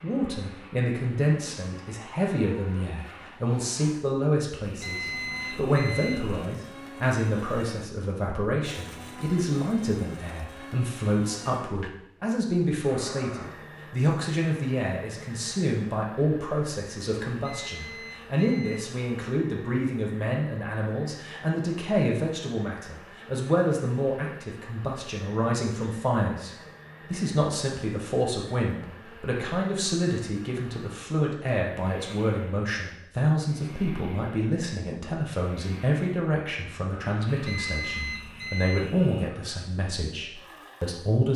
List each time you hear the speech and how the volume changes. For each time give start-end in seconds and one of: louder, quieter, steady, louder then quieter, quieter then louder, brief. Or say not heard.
0.0-41.3 steady.